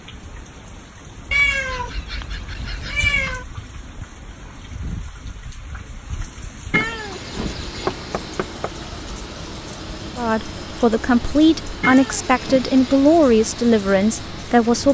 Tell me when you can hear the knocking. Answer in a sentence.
You can hear the knocking from 7.8 to 8.8 s.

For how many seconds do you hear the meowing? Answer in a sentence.
The meowing can be heard for 4 seconds in total.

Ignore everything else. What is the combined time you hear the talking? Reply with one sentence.
You can hear the talking for 5 seconds altogether.